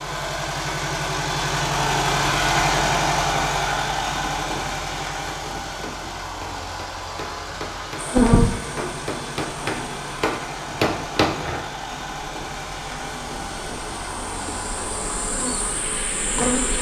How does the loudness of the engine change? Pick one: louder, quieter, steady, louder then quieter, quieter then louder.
quieter.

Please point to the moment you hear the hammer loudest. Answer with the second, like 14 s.
11 s.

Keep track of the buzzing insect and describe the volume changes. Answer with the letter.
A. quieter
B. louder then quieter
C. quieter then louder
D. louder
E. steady
C.